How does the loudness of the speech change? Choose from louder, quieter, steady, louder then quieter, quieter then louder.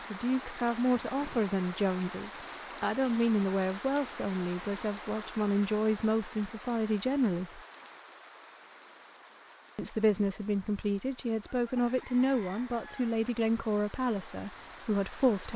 steady.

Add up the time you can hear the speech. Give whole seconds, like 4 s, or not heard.
13 s.